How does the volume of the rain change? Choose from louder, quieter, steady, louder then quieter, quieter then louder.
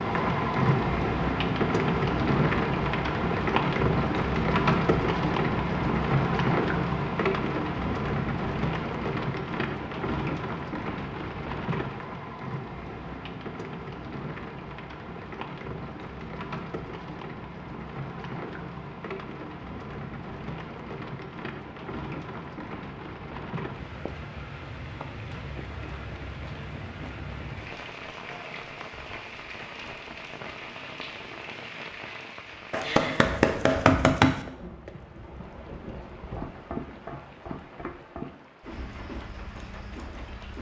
quieter.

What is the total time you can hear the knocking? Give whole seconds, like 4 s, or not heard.
2 s.